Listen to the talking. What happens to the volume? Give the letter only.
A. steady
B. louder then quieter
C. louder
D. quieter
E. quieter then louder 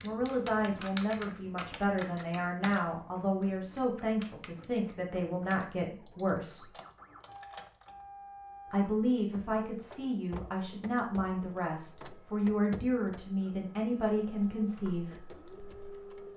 A.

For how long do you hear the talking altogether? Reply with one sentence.
You can hear the talking for 13 seconds altogether.